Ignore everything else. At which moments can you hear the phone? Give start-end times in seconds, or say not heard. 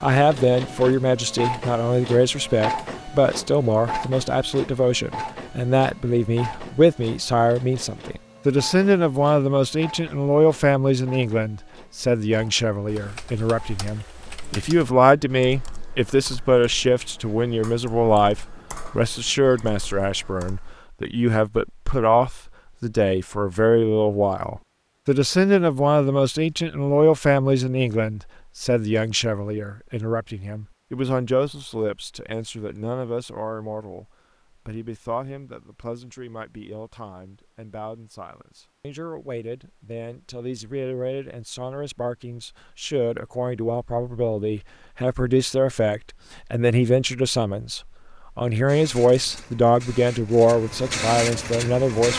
not heard.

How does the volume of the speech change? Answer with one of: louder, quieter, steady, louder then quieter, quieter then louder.
quieter then louder.